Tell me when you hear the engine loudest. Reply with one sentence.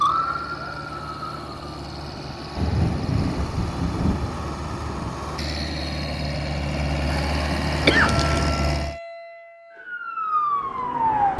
The loudest moment of the engine is at 8 seconds.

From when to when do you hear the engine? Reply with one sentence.
The engine can be heard from 0.0 to 9.0 s.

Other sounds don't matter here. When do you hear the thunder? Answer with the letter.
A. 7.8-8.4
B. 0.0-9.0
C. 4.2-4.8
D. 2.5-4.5
D.